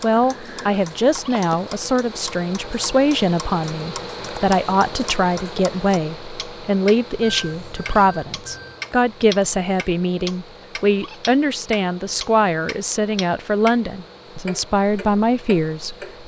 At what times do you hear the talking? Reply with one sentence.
You can hear the talking from 0.0 to 15.9 s.